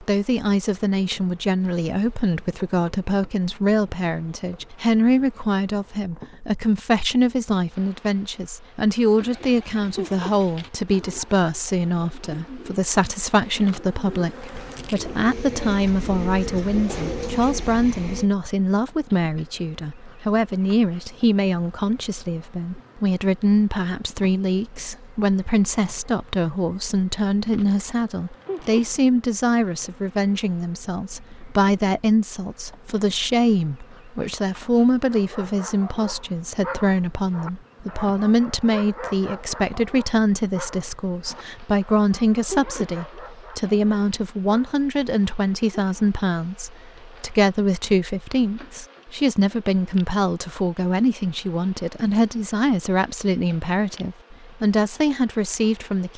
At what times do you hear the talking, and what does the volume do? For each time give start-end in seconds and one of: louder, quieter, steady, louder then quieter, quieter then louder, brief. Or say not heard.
0.0-56.1 steady.